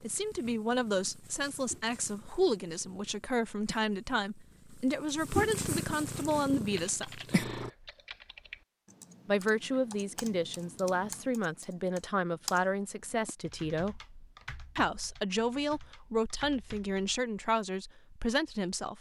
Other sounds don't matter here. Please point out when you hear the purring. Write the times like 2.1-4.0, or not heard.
0.0-7.7.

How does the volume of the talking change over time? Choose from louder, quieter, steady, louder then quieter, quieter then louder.
steady.